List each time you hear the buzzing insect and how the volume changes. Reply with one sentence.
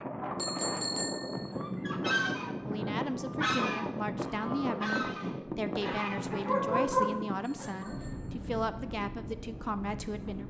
You can't hear the buzzing insect here.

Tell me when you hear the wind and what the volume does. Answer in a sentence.
You can hear the wind from 0.0 to 10.4 s, getting quieter.